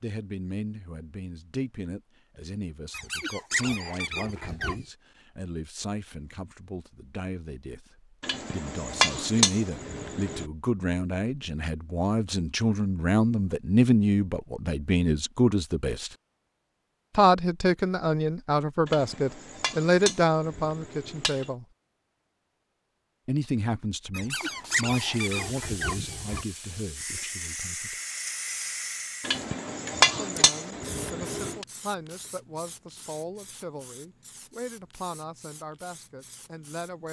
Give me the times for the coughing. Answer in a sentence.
The coughing can't be heard in this clip.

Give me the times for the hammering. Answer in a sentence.
The hammering can be heard from 8.2 to 10.4 s, from 18.9 to 21.5 s and from 29.2 to 31.6 s.